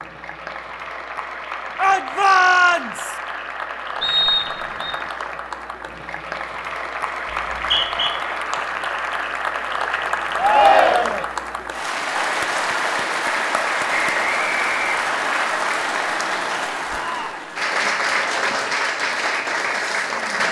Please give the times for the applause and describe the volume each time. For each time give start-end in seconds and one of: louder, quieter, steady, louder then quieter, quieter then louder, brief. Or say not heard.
0.0-20.4 louder.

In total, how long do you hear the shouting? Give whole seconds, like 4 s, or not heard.
3 s.